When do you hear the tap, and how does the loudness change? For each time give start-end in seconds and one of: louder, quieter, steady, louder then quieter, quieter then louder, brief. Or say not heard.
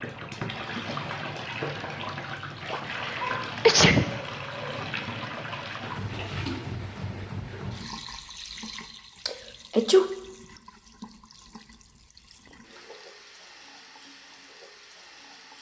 0.0-15.5 quieter.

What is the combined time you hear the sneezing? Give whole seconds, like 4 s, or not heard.
2 s.